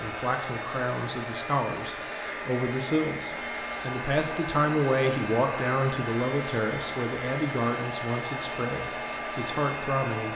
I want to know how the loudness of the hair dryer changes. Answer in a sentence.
The loudness of the hair dryer stays about the same.